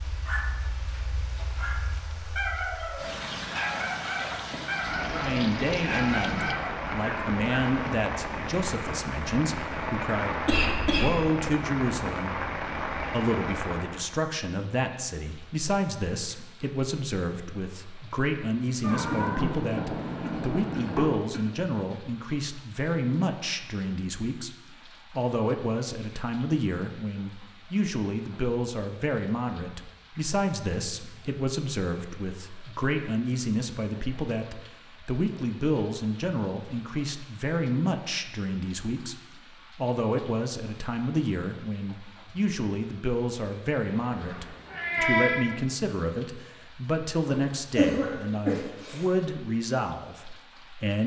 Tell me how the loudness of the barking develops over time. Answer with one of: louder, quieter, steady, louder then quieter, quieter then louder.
louder.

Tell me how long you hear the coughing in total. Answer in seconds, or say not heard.
4 s.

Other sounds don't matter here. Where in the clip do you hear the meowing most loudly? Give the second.
45 s.